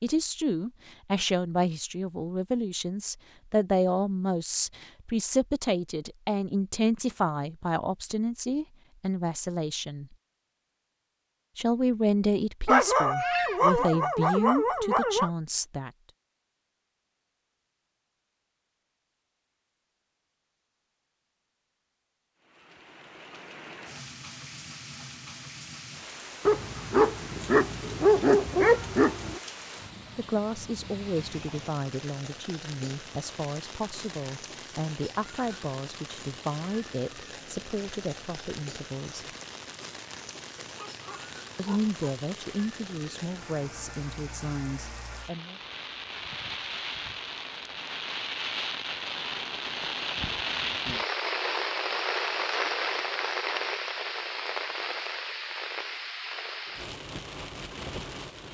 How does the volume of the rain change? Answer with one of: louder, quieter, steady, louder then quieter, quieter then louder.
louder.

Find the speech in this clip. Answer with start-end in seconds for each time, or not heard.
0.0-10.1, 11.6-15.9, 30.1-39.2, 41.5-45.6.